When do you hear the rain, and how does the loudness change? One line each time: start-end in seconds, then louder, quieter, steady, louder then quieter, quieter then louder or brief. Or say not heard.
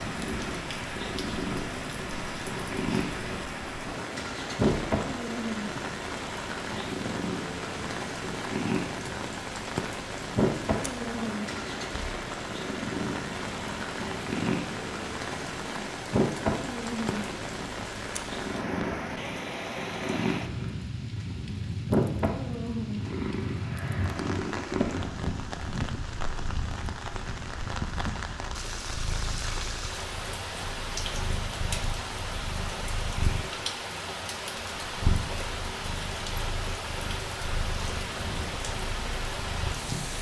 0.0-40.1 steady.